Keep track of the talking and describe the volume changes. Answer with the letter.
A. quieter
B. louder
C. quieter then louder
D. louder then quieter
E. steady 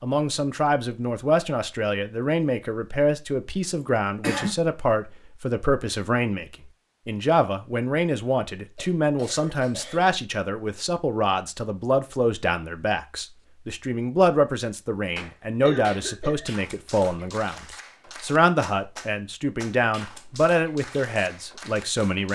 E.